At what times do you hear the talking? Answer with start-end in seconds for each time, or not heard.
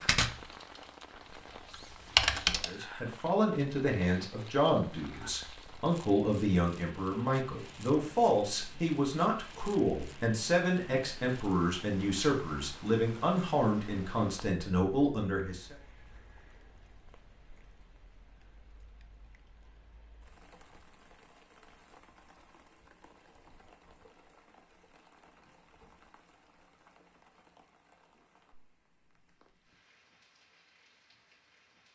2.6-15.8.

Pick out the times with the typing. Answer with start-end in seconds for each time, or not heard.
0.0-2.6.